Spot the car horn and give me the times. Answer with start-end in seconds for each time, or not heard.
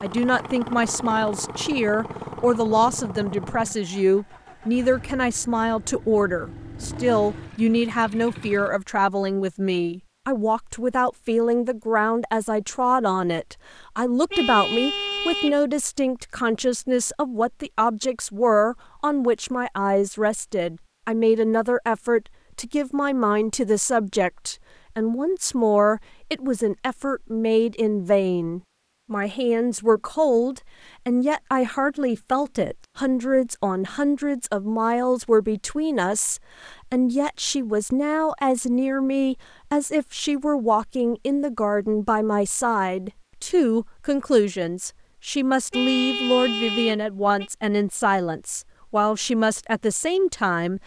14.3-15.6, 45.7-47.5.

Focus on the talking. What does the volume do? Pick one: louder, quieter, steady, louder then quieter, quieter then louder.
steady.